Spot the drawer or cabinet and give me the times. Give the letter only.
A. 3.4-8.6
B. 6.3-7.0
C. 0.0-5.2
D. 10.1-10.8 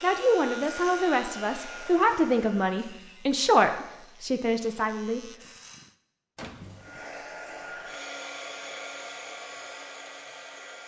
B.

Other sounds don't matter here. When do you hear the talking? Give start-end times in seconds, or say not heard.
0.0-5.2.